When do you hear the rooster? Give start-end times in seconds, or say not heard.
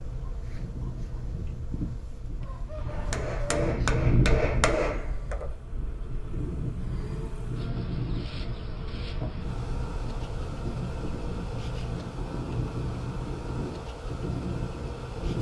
2.4-3.6.